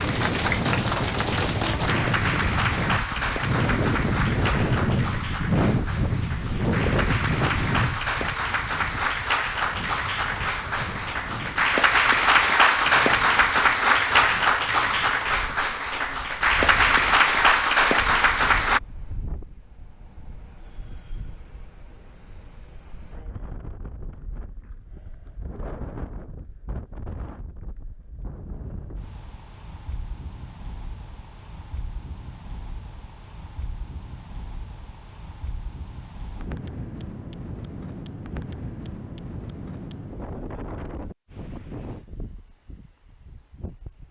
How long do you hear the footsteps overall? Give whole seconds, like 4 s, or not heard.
not heard.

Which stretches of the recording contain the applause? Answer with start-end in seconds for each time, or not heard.
0.0-18.8.